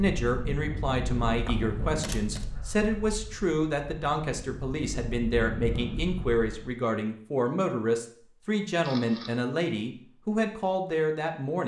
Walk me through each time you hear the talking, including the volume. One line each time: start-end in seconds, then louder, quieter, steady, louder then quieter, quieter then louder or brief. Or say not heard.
0.0-11.6 steady.